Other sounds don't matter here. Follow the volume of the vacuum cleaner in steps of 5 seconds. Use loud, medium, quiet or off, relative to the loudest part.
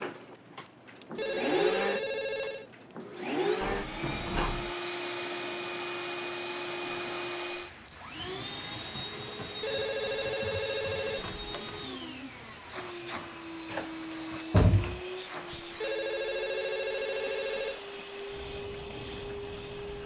loud, loud, medium, medium.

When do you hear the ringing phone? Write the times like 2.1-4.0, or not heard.
1.1-2.6, 9.6-11.2, 15.8-17.8.